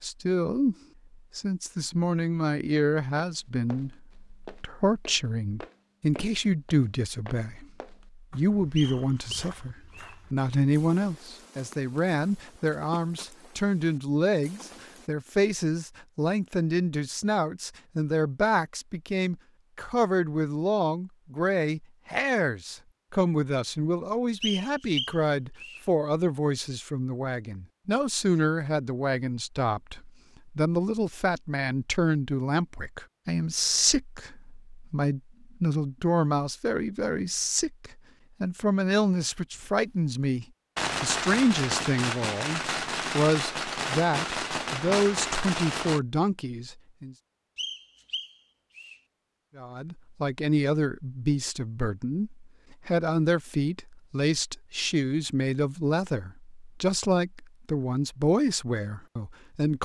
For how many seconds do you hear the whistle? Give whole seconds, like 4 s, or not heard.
4 s.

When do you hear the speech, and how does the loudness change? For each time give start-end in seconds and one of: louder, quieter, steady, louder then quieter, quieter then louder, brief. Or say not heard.
0.0-0.8 brief
1.4-47.1 steady
49.5-59.7 steady.